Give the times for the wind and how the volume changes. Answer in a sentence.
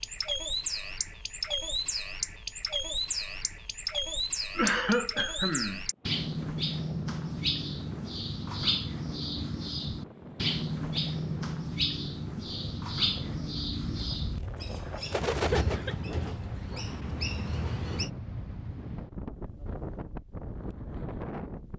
The wind can be heard from 5.9 to 21.7 s, getting louder.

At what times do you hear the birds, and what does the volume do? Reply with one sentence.
The birds can be heard from 0.0 to 18.1 s, at a steady volume.